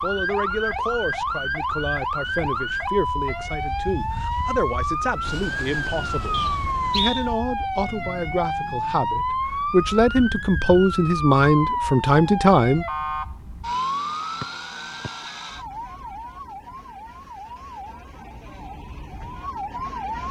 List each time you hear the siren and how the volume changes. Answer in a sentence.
The siren can be heard from 0.0 to 20.2 s, getting quieter.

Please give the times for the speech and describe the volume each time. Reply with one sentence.
You can hear the speech from 0.0 to 12.8 s, getting louder.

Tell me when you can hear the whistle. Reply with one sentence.
The whistle can be heard from 6.3 to 7.2 s and from 14.4 to 15.1 s.